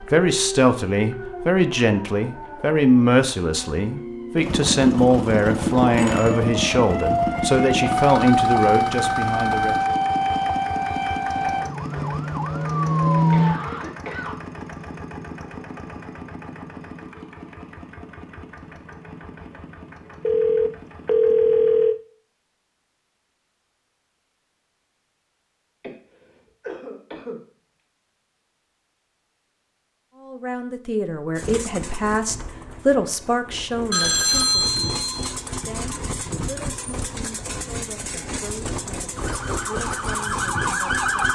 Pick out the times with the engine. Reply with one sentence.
You can hear the engine from 4.3 to 21.9 s and from 31.4 to 41.3 s.